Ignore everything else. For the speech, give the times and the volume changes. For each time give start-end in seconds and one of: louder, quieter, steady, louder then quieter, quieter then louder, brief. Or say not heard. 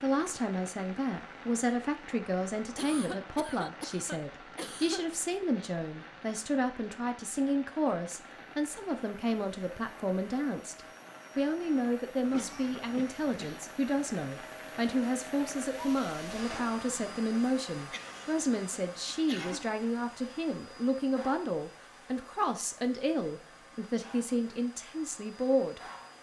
0.0-25.8 steady.